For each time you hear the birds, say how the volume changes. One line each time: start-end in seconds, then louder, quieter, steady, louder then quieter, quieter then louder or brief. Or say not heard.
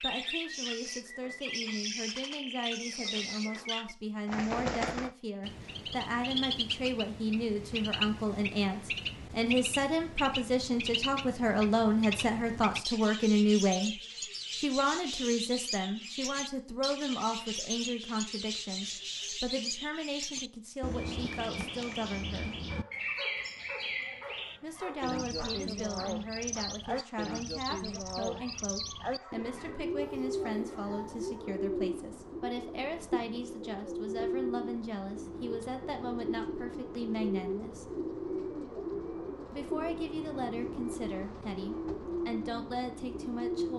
0.0-43.7 steady.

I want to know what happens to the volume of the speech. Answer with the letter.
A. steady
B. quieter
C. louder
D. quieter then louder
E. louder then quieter
E.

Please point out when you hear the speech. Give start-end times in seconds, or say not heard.
0.0-22.6, 24.6-37.9, 39.5-43.7.